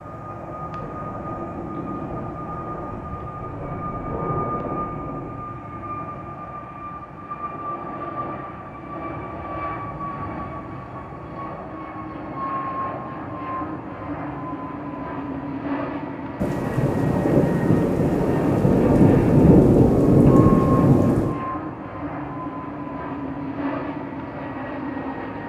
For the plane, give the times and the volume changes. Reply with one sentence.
The plane can be heard from 0.0 to 25.4 s, at a steady volume.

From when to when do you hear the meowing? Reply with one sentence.
You can't hear the meowing here.